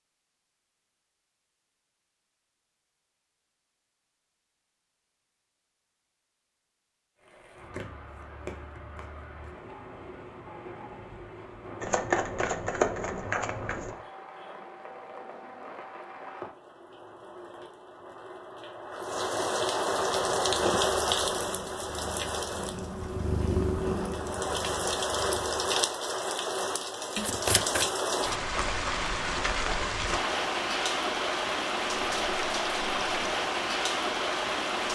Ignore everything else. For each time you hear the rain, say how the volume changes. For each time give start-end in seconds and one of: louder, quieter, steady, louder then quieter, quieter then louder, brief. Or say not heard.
7.2-34.9 louder.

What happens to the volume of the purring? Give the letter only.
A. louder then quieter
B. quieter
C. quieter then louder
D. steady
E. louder
A.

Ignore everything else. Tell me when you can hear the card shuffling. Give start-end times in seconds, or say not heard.
7.7-9.5, 11.8-14.0, 27.1-27.9.